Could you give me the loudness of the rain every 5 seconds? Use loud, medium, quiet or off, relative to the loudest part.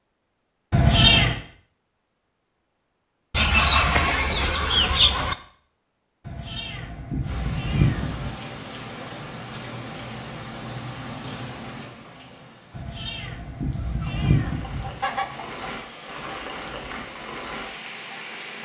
off, loud, loud, loud.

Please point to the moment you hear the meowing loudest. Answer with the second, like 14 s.
1 s.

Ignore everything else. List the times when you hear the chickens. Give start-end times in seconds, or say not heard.
3.3-5.3, 13.8-15.8.